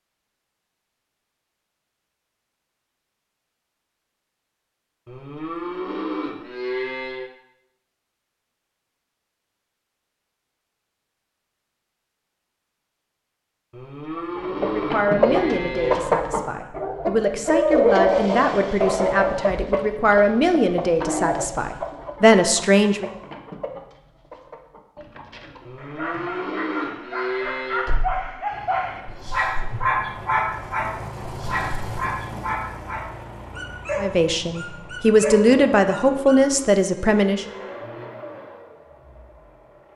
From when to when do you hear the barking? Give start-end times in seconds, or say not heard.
25.8-36.5.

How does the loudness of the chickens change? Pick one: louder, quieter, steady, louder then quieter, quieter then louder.
quieter.